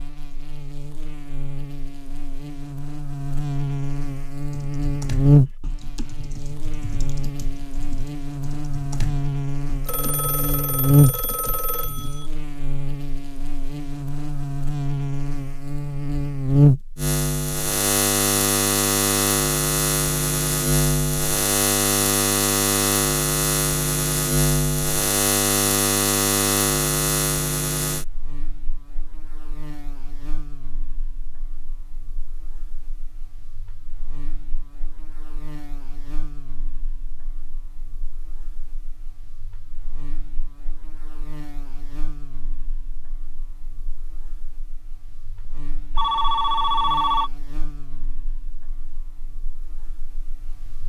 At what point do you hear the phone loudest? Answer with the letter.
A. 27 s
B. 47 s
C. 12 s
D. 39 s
B.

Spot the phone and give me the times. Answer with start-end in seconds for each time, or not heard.
9.8-12.2, 46.0-47.3.